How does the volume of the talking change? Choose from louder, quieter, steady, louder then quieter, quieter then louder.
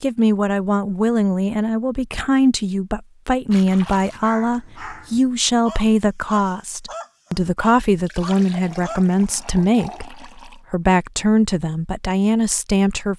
steady.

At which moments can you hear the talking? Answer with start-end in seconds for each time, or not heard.
0.0-13.1.